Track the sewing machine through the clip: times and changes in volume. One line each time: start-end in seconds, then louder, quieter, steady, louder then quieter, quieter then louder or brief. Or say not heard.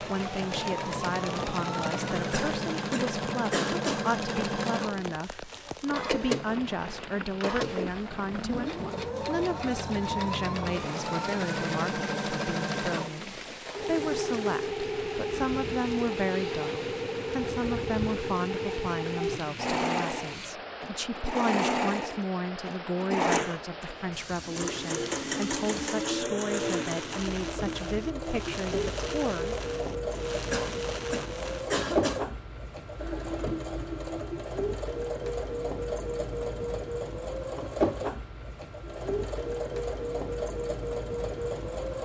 0.0-42.0 steady.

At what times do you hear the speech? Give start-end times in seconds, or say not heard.
0.0-29.6.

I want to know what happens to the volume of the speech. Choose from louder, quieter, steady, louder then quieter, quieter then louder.
steady.